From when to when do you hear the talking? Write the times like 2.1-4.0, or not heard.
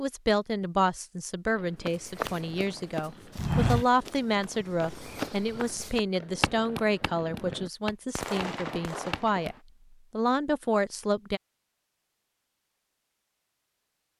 0.0-11.4.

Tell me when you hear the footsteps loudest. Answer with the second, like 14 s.
4 s.